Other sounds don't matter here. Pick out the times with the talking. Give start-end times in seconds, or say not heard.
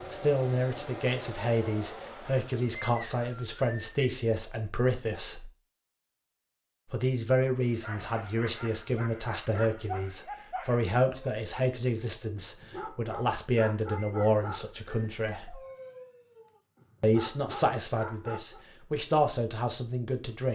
0.1-5.5, 6.9-15.6, 17.0-20.5.